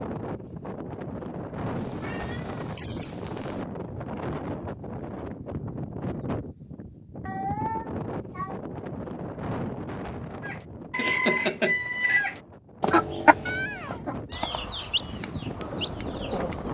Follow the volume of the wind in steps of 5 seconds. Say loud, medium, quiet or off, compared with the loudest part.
loud, loud, medium, loud.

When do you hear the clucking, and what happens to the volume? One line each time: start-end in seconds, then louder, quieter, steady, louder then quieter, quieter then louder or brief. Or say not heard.
10.4-16.6 quieter.